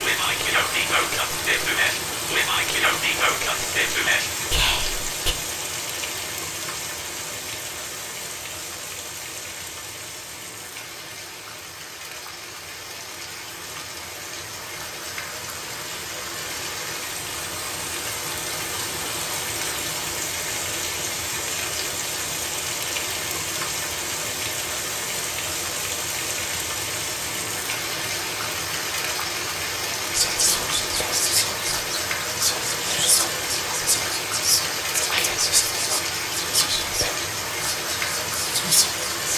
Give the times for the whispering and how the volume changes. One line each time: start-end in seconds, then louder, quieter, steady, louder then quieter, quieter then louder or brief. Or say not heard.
0.0-5.3 steady
30.1-39.3 steady.